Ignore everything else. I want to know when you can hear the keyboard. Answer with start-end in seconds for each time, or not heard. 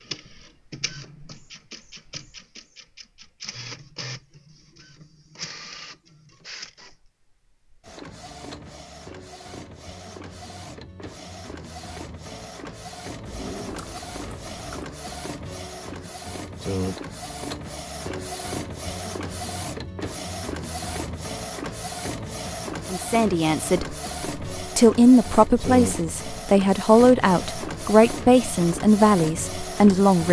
13.2-14.9.